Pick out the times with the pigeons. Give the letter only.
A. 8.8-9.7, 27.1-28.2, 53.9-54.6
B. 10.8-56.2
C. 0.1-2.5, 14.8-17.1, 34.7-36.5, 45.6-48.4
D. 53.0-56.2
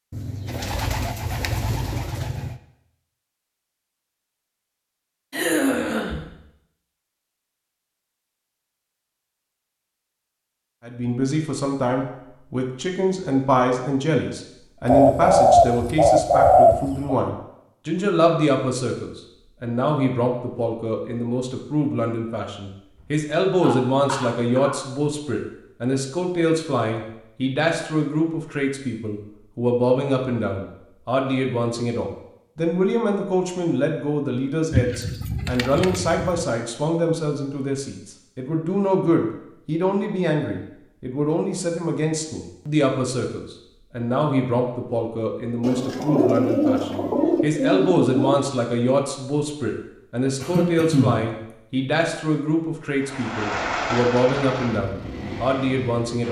C.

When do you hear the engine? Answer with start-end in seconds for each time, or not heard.
53.0-56.2.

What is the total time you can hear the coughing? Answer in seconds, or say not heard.
3 s.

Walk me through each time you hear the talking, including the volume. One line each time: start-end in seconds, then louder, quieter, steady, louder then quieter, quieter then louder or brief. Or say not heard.
10.8-56.2 steady.